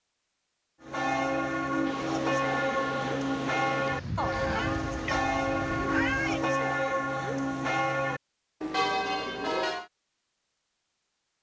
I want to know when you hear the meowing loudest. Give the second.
6 s.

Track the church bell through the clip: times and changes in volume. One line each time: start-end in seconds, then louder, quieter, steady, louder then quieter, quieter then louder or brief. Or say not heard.
0.8-9.8 steady.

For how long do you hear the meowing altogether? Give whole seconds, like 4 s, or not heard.
2 s.